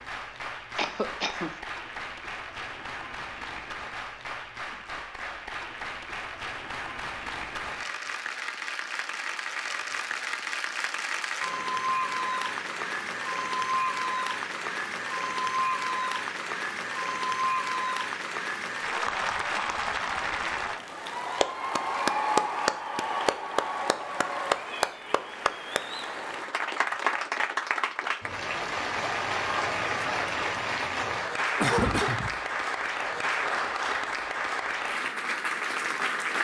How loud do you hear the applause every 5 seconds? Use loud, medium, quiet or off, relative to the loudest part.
medium, medium, loud, loud, loud, loud, loud, loud.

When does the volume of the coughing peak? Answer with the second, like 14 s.
32 s.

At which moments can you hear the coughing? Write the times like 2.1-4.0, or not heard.
0.8-1.6, 31.6-32.4.